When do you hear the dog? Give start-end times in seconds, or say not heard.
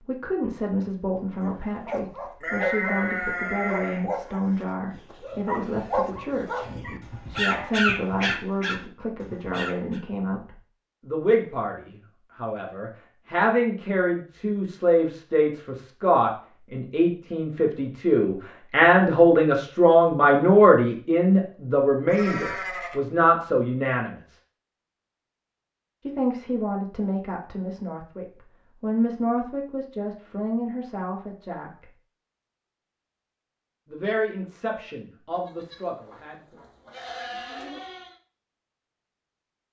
1.4-10.0.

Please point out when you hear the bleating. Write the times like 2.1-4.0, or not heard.
2.4-4.0, 22.1-23.0, 35.3-38.1.